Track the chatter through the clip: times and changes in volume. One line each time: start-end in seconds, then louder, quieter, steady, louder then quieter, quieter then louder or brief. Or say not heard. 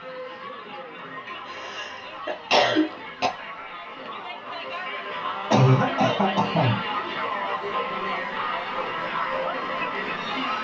0.0-10.5 louder.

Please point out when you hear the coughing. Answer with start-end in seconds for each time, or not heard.
1.2-3.3, 5.5-6.8.